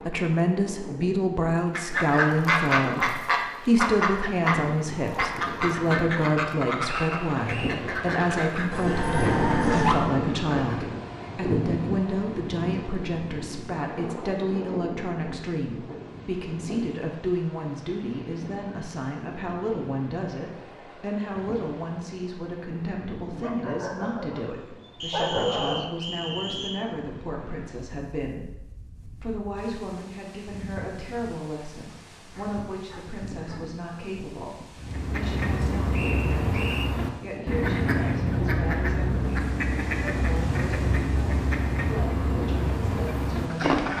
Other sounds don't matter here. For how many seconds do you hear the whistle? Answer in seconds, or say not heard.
4 s.